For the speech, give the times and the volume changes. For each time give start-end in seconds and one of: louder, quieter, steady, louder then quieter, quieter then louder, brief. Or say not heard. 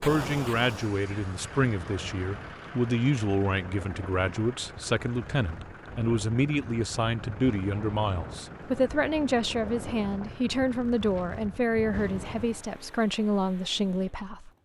0.0-14.5 steady.